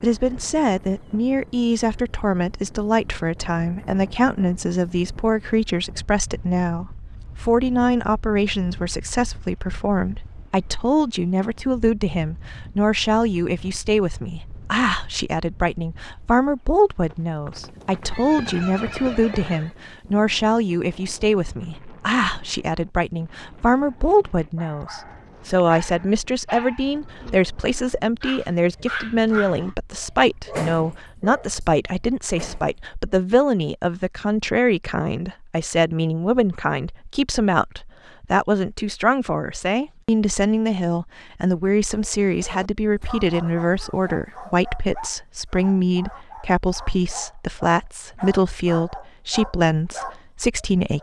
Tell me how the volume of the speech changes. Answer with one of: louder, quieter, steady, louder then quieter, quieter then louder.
steady.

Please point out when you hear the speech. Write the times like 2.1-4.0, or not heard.
0.0-50.9.